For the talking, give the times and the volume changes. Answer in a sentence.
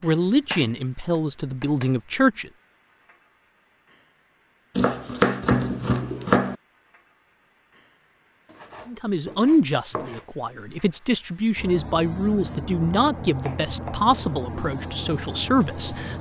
You can hear the talking briefly from 0.0 to 2.5 s; and from 8.8 to 16.1 s, at a steady volume.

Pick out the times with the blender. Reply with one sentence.
The blender can't be heard in this clip.